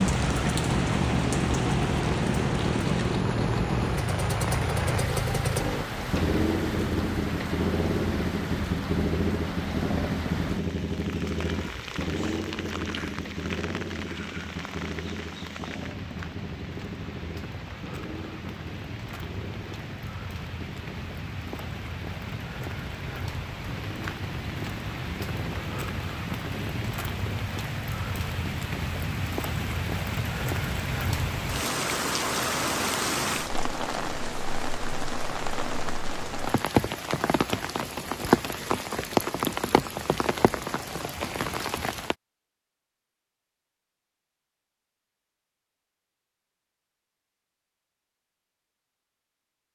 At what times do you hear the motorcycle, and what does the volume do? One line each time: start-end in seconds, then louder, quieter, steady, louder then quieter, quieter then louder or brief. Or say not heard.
0.0-26.9 quieter.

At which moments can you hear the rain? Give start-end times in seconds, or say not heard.
0.0-42.1.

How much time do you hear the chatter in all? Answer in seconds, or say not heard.
not heard.